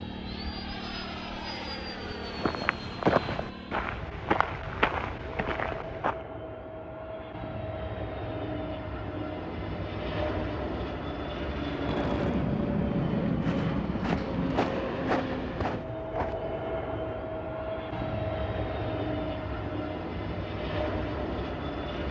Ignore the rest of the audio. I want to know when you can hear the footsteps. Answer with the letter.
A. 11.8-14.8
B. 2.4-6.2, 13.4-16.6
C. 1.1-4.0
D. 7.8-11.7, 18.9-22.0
B.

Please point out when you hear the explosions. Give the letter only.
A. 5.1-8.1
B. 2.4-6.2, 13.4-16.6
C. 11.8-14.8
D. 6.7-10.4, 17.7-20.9
C.